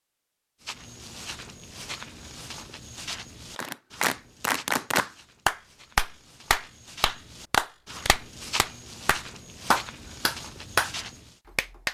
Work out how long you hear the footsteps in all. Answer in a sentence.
The footsteps can be heard for 11 seconds in total.